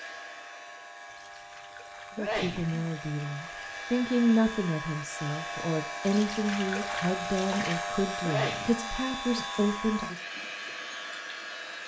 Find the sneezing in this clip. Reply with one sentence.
You can hear the sneezing from 2.1 to 2.9 s and from 8.2 to 10.1 s.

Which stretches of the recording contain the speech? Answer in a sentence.
You can hear the speech from 2.1 to 10.2 s.